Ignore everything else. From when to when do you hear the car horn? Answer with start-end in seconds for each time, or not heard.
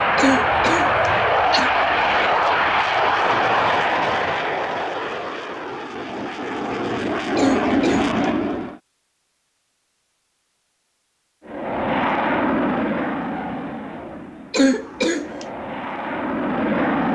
not heard.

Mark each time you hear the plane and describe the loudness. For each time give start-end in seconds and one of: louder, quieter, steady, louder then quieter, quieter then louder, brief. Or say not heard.
0.0-8.8 quieter then louder
11.4-17.1 quieter then louder.